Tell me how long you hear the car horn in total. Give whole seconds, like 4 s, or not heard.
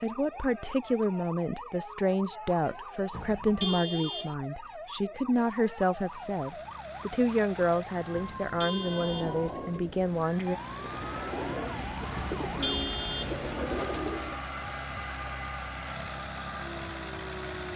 4 s.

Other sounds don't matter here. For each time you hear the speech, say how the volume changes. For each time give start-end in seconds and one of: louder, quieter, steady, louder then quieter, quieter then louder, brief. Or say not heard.
0.0-10.6 steady.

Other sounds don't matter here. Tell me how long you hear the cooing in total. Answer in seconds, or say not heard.
6 s.